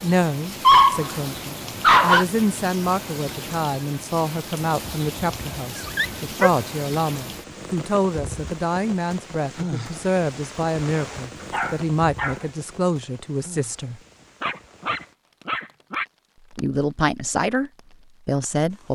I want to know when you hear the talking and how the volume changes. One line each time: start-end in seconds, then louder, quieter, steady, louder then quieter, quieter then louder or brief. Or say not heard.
0.0-14.0 steady
16.5-18.8 brief.